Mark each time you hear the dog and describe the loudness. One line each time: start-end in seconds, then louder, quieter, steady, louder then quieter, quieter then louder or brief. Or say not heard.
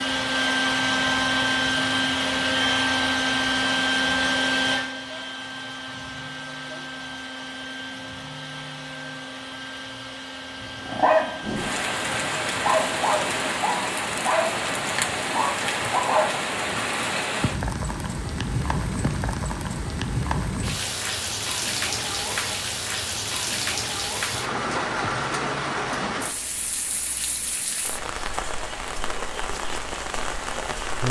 10.6-11.6 brief
12.5-16.5 steady.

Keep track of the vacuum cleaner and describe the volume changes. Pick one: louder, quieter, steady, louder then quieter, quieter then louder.
quieter.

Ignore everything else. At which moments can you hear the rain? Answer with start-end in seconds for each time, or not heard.
11.4-31.0.